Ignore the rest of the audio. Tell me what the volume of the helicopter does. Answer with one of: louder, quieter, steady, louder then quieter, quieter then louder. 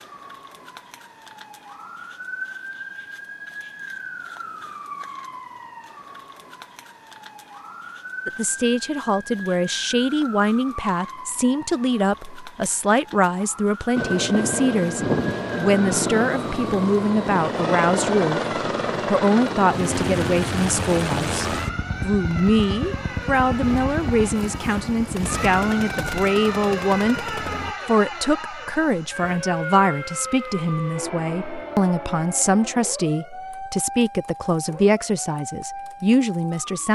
quieter.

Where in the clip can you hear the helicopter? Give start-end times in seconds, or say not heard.
13.9-27.8.